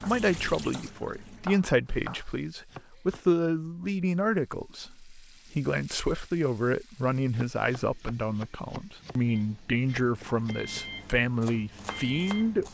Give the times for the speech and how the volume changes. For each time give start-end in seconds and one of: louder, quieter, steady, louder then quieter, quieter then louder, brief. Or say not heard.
0.0-12.6 steady.